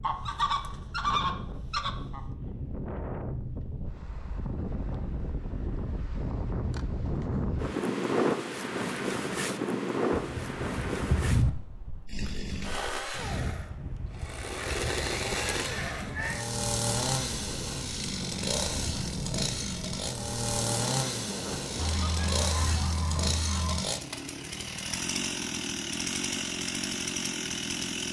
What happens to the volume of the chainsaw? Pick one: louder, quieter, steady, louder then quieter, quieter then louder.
steady.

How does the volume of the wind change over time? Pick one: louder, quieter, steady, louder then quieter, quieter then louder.
louder then quieter.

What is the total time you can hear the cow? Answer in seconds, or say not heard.
not heard.